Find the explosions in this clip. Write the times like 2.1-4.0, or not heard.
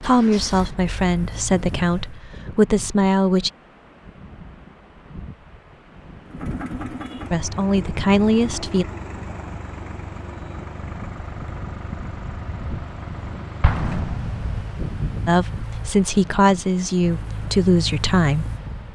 13.6-14.7.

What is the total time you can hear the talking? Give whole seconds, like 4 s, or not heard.
8 s.